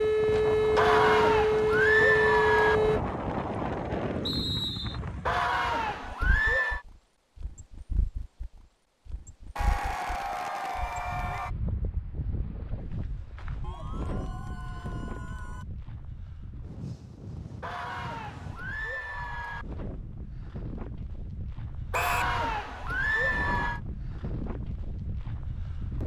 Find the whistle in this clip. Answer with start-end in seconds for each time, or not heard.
4.2-5.0, 21.9-22.4.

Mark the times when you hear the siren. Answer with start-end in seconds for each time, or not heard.
0.0-3.0.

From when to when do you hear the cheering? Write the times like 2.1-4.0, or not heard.
0.8-2.8, 5.2-6.8, 9.6-11.5, 13.6-15.7, 17.6-19.6, 21.9-23.8.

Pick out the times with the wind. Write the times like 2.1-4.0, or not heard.
0.0-26.0.